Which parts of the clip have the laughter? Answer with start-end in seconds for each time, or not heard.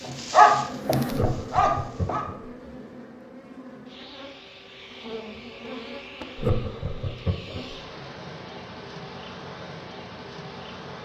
1.1-2.5, 6.3-7.8.